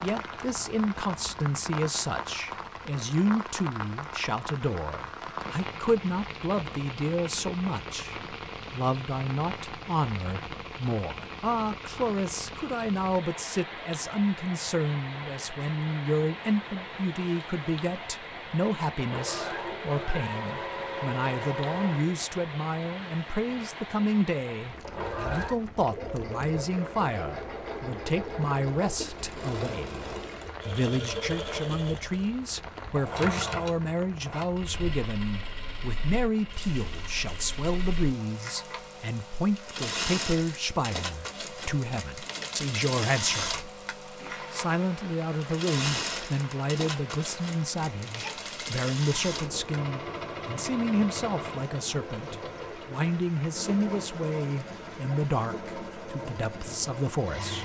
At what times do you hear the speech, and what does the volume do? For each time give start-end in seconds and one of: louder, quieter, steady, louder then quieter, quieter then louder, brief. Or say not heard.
0.0-43.6 steady
44.5-57.5 steady.